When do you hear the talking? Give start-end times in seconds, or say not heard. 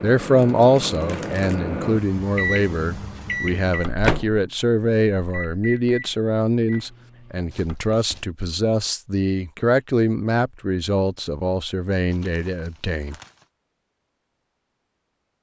0.0-13.2.